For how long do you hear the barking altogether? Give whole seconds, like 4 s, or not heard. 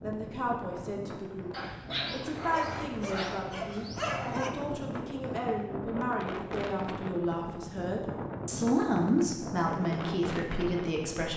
3 s.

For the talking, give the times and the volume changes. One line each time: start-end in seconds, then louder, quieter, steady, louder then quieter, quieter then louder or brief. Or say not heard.
0.0-11.3 louder.